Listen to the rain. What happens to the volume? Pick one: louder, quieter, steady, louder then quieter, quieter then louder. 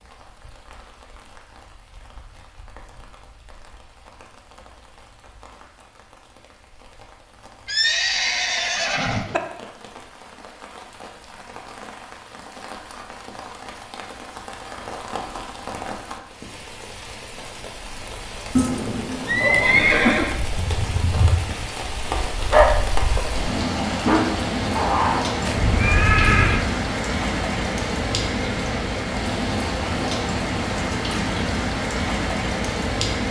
louder.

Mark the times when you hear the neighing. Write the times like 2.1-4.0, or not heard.
7.7-9.4, 18.6-20.4, 25.4-26.6.